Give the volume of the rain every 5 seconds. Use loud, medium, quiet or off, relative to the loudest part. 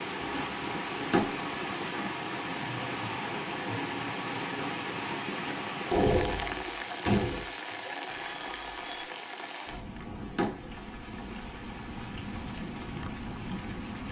loud, loud, medium.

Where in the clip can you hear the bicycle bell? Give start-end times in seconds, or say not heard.
8.1-9.2.